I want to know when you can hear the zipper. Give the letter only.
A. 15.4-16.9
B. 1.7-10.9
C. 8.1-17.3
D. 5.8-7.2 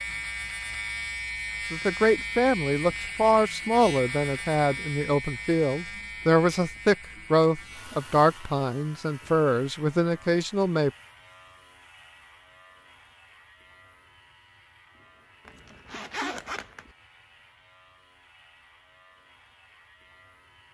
A.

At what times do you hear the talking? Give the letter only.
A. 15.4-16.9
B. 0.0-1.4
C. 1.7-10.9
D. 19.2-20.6
C.